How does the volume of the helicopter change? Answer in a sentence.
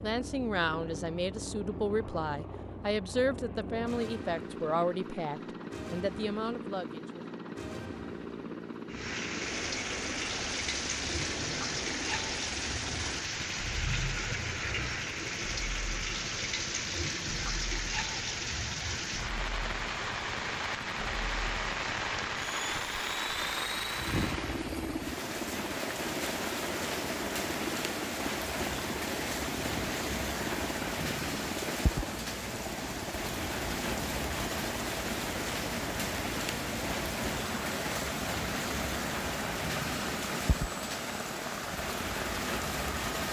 The loudness of the helicopter stays about the same.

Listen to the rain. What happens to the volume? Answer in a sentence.
The loudness of the rain stays about the same.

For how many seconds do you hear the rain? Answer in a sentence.
The rain can be heard for 34 seconds in total.